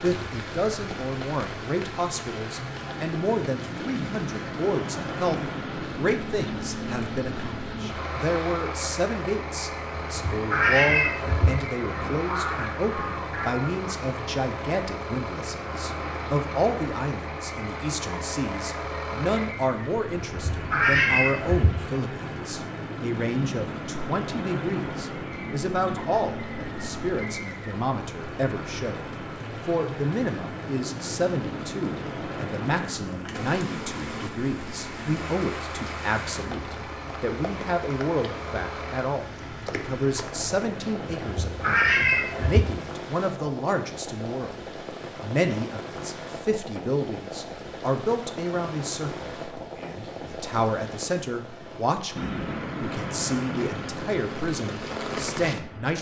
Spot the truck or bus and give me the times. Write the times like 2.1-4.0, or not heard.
0.0-41.4, 52.1-55.9.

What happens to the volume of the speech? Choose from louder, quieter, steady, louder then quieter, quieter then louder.
steady.